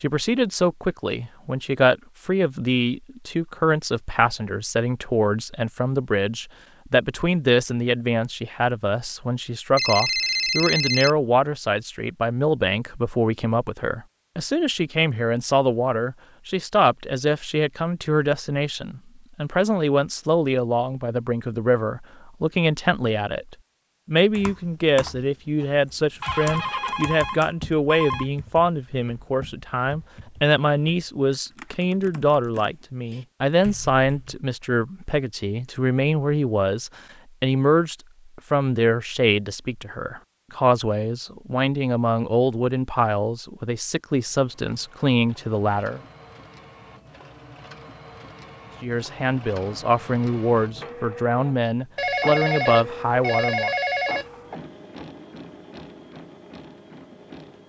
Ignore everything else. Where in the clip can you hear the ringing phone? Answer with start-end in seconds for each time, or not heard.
9.8-11.1, 26.2-28.2, 52.0-54.2.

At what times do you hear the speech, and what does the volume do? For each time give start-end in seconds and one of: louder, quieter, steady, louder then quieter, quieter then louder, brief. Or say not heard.
0.0-46.0 steady
48.8-53.8 steady.